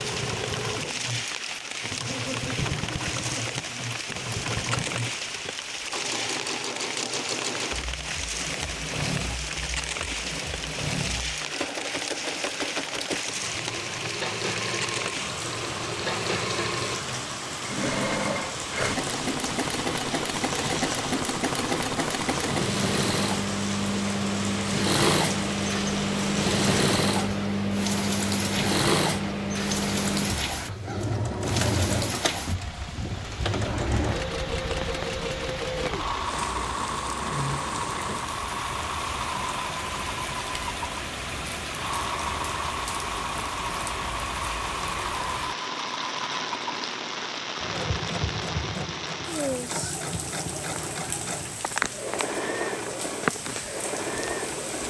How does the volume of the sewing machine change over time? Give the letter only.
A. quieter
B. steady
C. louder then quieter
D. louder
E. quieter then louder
C.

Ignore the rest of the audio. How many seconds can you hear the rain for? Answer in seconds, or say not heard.
55 s.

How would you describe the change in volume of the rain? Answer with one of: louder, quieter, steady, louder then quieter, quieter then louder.
steady.